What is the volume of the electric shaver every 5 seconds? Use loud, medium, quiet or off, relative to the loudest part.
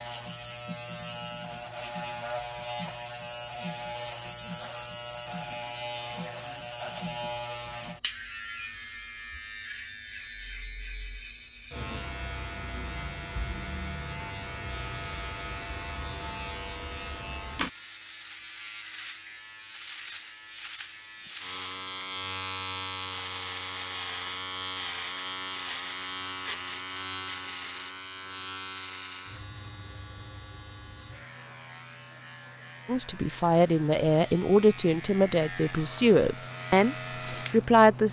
loud, loud, loud, loud, loud, loud, medium, loud.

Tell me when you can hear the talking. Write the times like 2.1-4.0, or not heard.
32.9-38.0.